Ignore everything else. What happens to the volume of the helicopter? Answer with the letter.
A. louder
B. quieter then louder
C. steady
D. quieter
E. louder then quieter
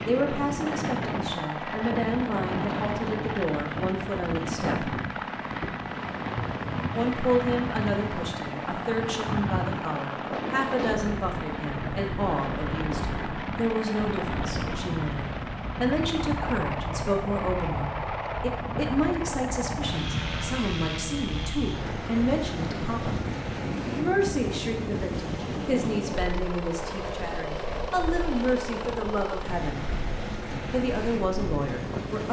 C.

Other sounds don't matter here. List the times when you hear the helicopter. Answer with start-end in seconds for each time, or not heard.
0.0-32.2.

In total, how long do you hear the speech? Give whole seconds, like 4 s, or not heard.
29 s.